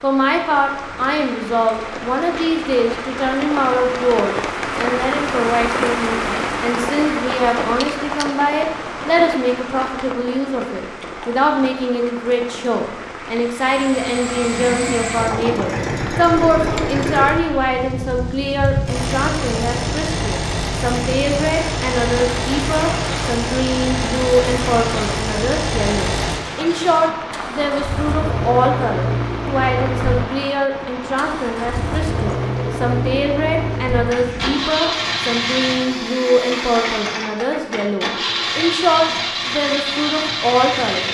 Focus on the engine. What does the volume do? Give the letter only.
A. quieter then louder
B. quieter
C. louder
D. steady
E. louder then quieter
D.